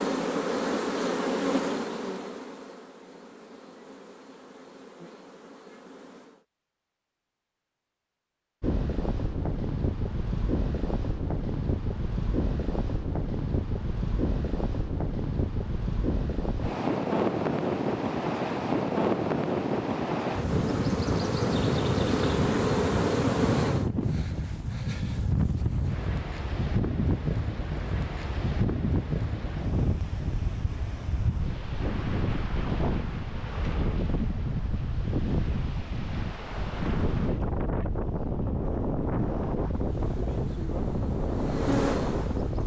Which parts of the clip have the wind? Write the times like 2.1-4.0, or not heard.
8.6-42.6.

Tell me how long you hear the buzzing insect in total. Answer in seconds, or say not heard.
13 s.